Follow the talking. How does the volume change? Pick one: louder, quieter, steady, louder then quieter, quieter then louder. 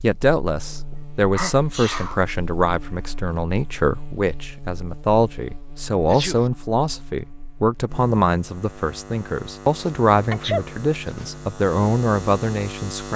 steady.